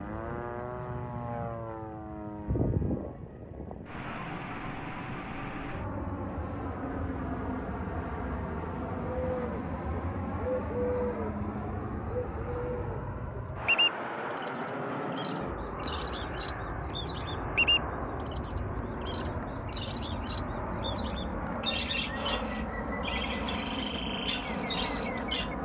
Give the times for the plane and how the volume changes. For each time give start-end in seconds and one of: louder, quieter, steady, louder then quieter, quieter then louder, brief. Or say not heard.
0.0-25.6 steady.